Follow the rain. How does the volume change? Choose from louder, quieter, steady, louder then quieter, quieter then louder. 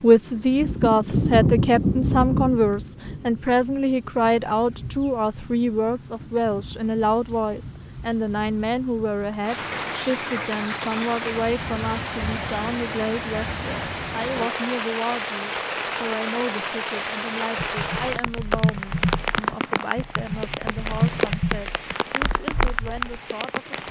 quieter then louder.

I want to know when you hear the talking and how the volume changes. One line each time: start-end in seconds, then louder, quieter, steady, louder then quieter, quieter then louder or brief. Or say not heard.
0.0-23.8 quieter.